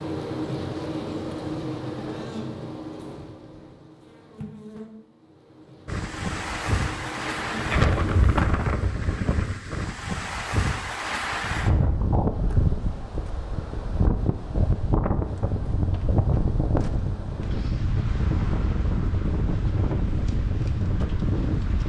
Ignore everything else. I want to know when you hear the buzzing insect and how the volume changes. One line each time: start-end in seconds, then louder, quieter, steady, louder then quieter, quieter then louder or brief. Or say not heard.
0.0-8.2 quieter then louder.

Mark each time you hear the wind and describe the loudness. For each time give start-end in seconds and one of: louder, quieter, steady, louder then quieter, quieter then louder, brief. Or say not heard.
5.8-21.8 steady.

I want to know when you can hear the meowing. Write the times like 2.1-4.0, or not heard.
not heard.